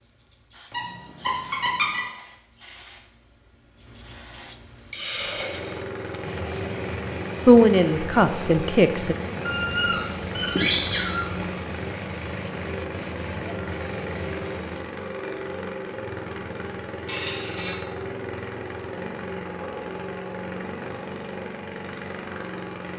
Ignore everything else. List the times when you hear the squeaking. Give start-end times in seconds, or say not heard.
0.7-2.0, 9.4-11.4, 17.1-17.8.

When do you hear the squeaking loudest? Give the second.
11 s.